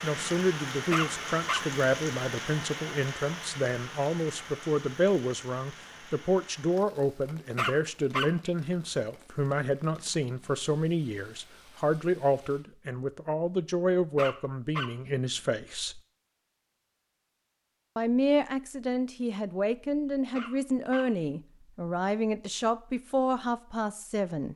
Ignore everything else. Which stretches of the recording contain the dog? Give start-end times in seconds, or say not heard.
0.9-1.6, 7.5-8.5, 14.2-15.1, 20.3-21.2.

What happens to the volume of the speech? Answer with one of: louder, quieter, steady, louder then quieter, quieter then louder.
steady.